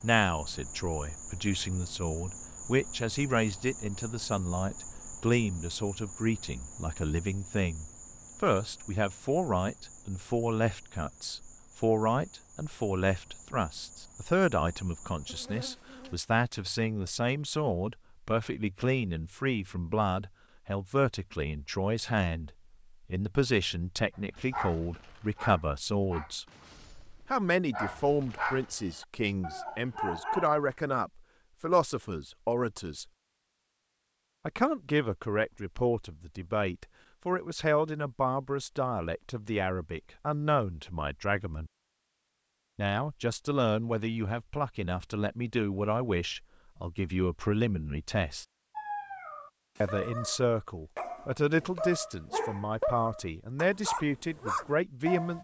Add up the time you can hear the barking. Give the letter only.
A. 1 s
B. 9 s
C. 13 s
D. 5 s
C.